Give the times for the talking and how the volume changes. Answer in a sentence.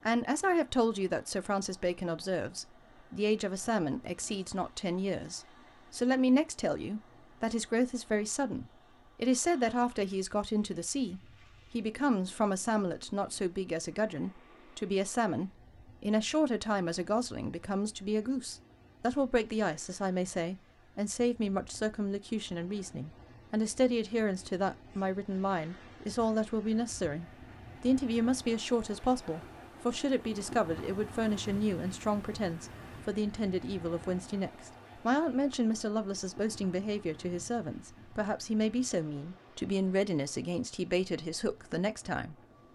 The talking can be heard from 0.1 to 42.7 s, at a steady volume.